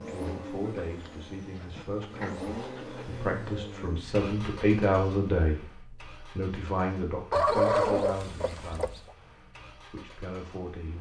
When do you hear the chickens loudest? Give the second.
8 s.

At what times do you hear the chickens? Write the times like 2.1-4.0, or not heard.
0.7-3.2, 7.3-9.1.